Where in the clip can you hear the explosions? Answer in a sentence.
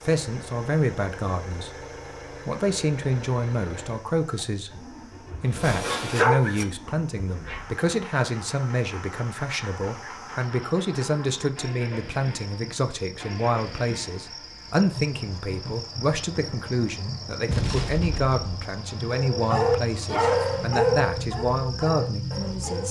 The explosions can be heard from 17.4 to 18.6 s.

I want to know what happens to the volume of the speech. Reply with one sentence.
The loudness of the speech stays about the same.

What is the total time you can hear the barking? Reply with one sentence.
You can hear the barking for 6 seconds altogether.